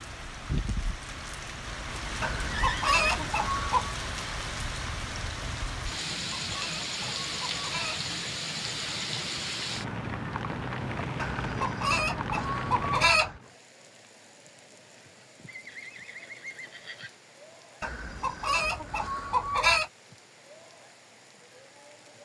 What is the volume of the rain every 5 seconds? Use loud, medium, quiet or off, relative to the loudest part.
loud, loud, loud, quiet, quiet.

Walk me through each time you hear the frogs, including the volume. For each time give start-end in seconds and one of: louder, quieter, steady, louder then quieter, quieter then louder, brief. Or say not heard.
not heard.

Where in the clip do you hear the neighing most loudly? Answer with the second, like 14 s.
3 s.